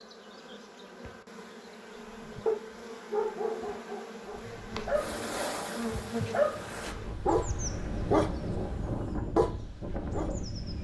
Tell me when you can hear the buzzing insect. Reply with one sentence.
The buzzing insect can be heard from 0.0 to 10.7 s.